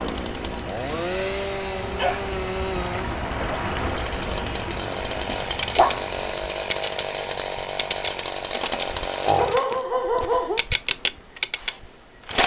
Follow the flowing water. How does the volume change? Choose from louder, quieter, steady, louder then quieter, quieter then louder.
louder then quieter.